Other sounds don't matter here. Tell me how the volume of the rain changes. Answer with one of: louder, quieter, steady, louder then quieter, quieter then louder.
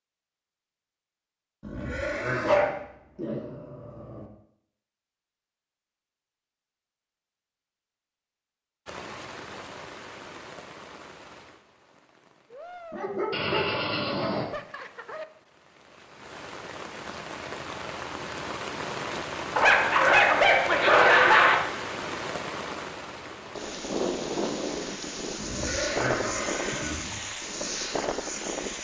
louder.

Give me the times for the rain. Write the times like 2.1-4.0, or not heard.
8.8-28.8.